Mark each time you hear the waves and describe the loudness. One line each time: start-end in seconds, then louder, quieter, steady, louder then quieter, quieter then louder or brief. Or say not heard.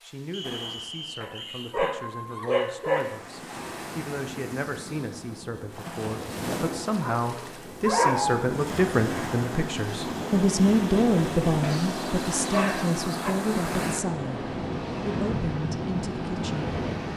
0.0-17.1 louder.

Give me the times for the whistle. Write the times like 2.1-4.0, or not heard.
0.3-1.8.